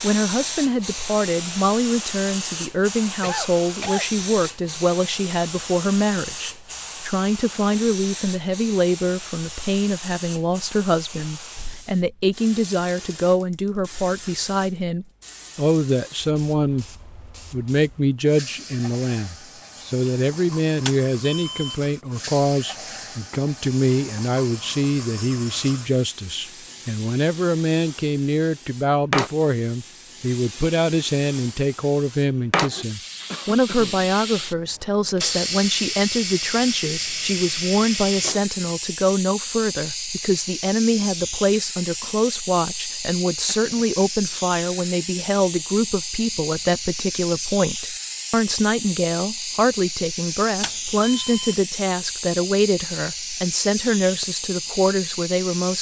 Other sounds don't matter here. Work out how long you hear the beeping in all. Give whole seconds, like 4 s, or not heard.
2 s.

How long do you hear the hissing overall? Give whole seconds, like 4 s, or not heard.
56 s.